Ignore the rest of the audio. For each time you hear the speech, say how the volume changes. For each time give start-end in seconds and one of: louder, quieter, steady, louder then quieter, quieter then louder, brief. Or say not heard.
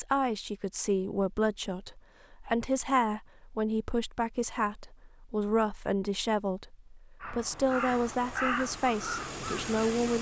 0.0-10.1 steady.